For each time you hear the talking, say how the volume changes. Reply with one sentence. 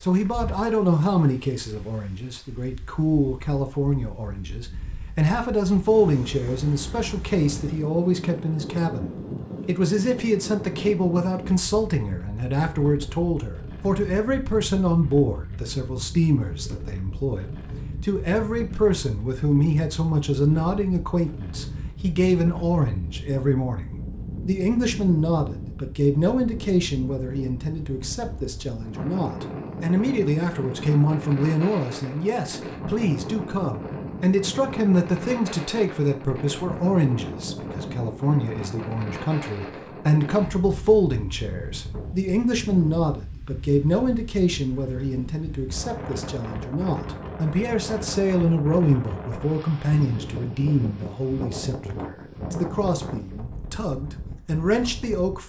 The talking can be heard from 0.0 to 55.4 s, at a steady volume.